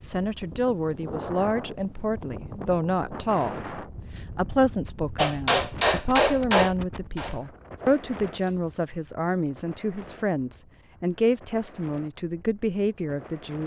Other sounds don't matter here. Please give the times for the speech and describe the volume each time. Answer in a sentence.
You can hear the speech from 0.0 to 13.6 s, at a steady volume.